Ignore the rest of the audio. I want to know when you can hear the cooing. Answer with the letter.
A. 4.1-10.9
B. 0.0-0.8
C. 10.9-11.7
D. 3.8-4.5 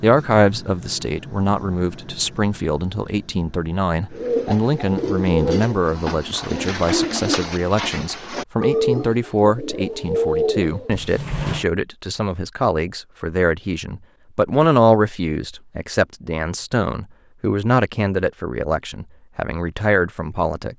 A.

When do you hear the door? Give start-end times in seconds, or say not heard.
10.9-11.7.